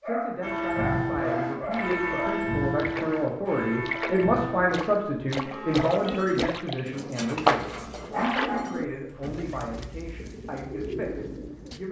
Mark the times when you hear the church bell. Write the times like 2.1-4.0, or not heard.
0.4-6.3.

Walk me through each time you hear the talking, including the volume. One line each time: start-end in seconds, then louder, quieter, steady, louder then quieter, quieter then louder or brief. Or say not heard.
0.0-11.8 louder then quieter.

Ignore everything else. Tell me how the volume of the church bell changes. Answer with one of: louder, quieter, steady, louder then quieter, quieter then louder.
quieter.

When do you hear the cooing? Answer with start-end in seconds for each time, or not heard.
5.9-11.8.